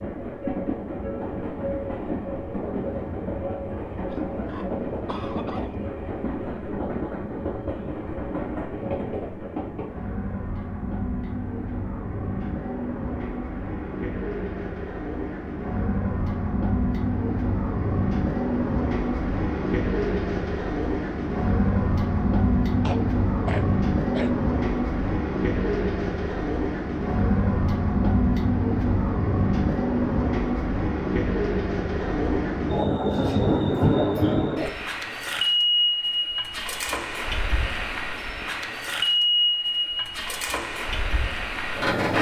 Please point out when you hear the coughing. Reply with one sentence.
You can hear the coughing from 4.1 to 5.8 s and from 22.8 to 24.4 s.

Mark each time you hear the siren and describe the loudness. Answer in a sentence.
The siren can't be heard in this clip.